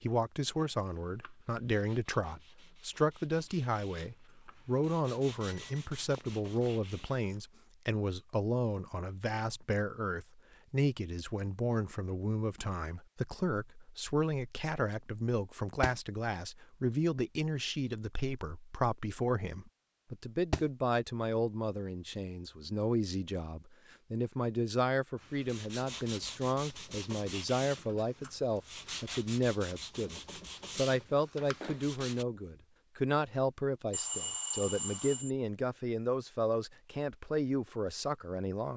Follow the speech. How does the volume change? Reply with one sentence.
The loudness of the speech stays about the same.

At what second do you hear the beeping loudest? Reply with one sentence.
The loudest moment of the beeping is at 34 seconds.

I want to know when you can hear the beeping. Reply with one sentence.
You can hear the beeping from 5.4 to 6.8 s and from 33.9 to 35.3 s.